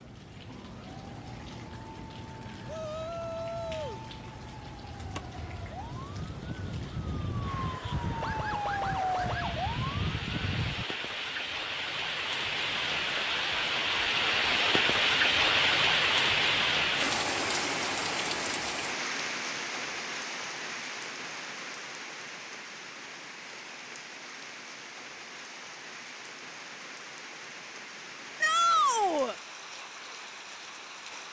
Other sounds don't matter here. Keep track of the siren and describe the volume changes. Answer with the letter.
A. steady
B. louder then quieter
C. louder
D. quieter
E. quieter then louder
C.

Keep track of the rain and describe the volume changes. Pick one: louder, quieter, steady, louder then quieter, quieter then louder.
louder then quieter.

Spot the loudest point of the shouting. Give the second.
29 s.